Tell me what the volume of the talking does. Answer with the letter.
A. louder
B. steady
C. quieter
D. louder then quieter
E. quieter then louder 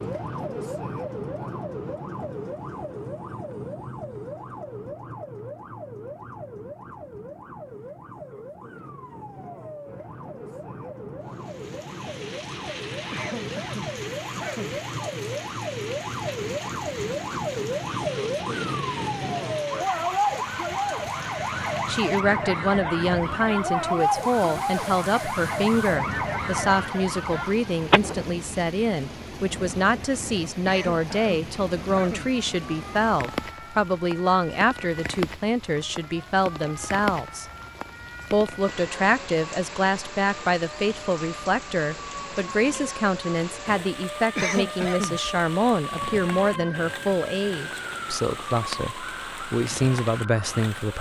B.